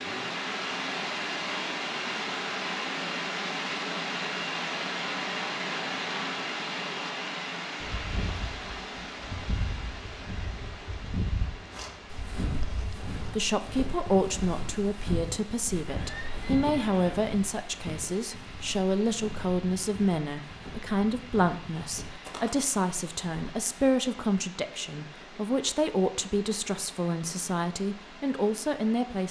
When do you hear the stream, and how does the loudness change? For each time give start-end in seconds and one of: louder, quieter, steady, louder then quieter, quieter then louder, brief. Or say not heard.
0.0-29.2 quieter.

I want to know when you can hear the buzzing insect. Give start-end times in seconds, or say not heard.
7.8-13.3.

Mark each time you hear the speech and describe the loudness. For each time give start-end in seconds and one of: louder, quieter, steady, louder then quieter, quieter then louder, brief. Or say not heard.
13.2-29.2 steady.